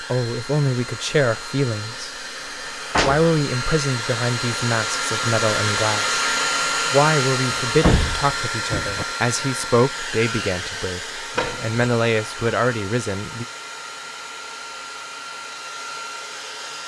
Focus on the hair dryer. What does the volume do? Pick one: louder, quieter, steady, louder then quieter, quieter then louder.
louder then quieter.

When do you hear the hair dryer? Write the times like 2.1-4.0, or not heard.
0.0-16.8.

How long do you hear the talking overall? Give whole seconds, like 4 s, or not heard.
12 s.